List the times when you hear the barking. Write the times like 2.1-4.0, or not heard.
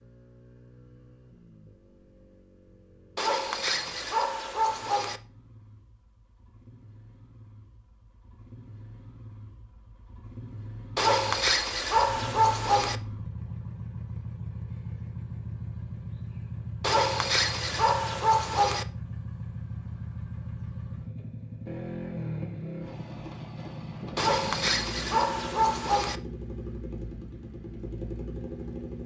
3.1-5.2, 10.9-12.9, 16.8-18.9, 24.1-26.2.